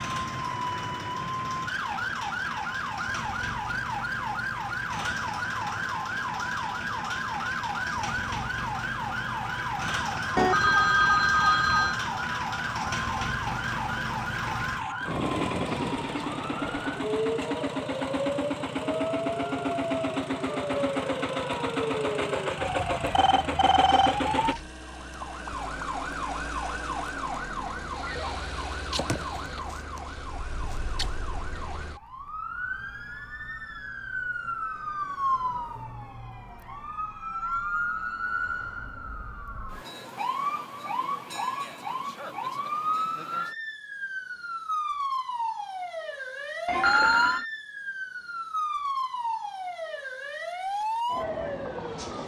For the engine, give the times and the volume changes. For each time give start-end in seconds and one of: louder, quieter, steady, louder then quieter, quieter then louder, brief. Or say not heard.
0.0-24.6 louder.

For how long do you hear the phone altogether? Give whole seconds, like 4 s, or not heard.
4 s.